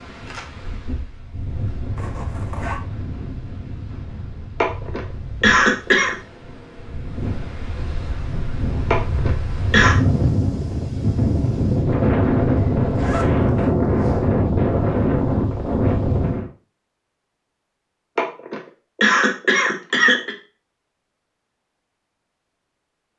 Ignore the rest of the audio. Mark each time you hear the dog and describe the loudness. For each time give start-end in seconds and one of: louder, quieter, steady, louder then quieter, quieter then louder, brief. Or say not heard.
not heard.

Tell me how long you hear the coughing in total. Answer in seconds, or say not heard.
5 s.